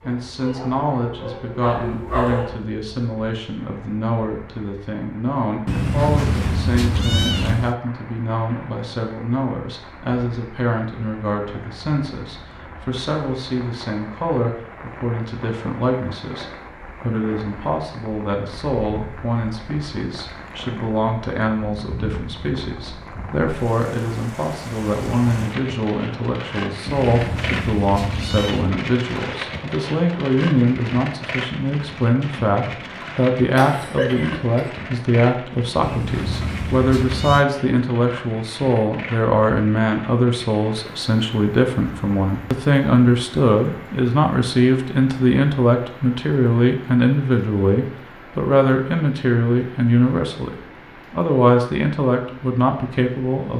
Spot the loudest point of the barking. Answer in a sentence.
The volume of the barking peaks at 2 seconds.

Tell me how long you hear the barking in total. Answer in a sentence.
You can hear the barking for 3 seconds altogether.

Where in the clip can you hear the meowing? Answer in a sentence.
The meowing can be heard from 5.7 to 7.8 s, from 26.9 to 28.8 s and from 35.8 to 37.5 s.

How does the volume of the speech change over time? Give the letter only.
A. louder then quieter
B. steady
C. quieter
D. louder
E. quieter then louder
D.